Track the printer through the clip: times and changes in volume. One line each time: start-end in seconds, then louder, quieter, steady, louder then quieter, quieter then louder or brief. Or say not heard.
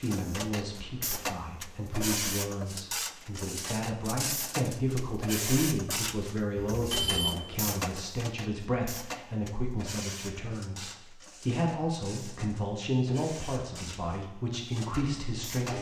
0.0-15.7 quieter.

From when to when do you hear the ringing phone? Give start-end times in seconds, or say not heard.
6.5-7.3.